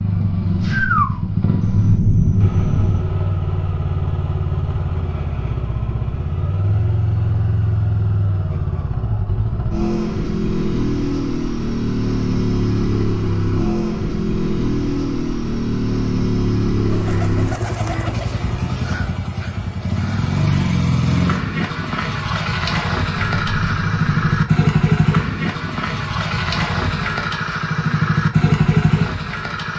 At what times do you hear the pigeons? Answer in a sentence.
The pigeons can be heard from 16.9 to 18.5 s.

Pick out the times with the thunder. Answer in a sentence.
The thunder can be heard from 1.6 to 3.0 s and from 23.1 to 24.4 s.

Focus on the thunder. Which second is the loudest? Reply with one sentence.
The volume of the thunder peaks at 2 seconds.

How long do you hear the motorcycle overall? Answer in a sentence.
The motorcycle can be heard for 30 seconds in total.